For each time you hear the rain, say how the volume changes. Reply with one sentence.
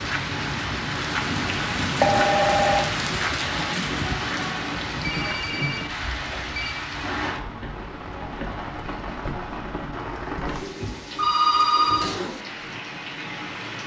The rain can be heard from 0.0 to 13.8 s, getting quieter.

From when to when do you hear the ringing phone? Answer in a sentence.
You can hear the ringing phone from 2.0 to 2.8 s, from 5.0 to 6.8 s and from 11.2 to 12.1 s.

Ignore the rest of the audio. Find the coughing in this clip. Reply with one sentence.
You can't hear the coughing here.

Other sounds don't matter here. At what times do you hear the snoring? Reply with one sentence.
You can't hear the snoring here.